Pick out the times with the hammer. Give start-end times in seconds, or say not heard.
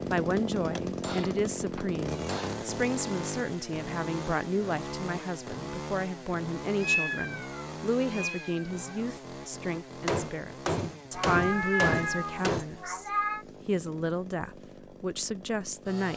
1.0-2.6, 10.1-12.7.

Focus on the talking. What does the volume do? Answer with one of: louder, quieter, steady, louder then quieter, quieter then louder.
steady.